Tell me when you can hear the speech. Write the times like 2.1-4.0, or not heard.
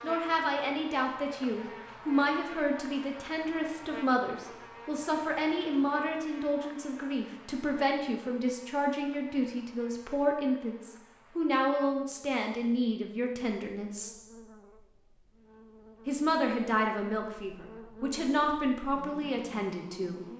0.0-14.2, 16.1-20.2.